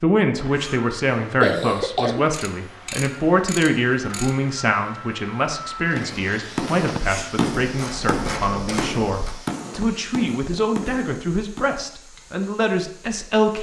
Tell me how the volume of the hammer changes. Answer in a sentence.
The loudness of the hammer goes down.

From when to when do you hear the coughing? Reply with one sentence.
The coughing can be heard from 0.3 to 2.4 s, from 6.8 to 7.4 s and from 9.7 to 10.6 s.